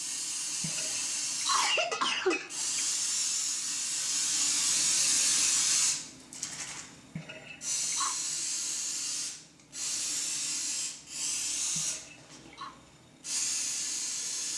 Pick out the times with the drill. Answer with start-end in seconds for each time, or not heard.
not heard.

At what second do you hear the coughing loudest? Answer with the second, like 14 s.
2 s.